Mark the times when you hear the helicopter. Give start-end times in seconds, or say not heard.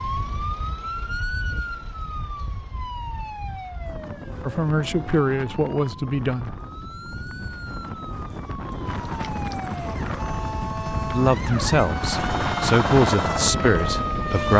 8.8-14.5.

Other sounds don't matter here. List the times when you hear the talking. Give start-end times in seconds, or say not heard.
4.5-6.5, 11.1-14.5.